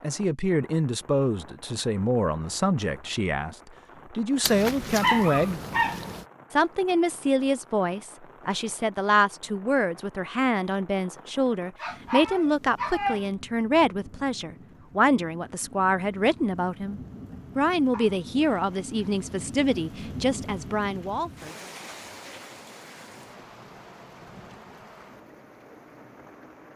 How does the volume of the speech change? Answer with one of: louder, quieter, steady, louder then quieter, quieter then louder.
steady.